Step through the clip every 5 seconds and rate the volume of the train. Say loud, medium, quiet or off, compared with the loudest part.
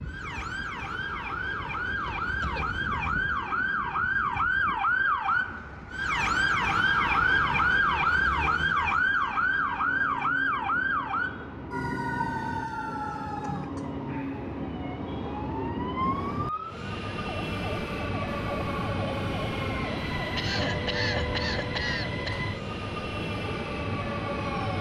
medium, quiet, medium, loud, loud.